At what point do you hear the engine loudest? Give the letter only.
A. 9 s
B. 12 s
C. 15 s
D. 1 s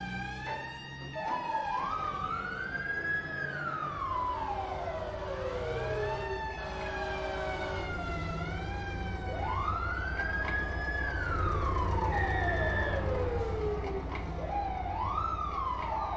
B.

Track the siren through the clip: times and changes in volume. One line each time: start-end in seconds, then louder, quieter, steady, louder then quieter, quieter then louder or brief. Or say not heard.
0.0-16.1 steady.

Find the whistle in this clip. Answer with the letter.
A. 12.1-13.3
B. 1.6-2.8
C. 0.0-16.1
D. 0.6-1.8
A.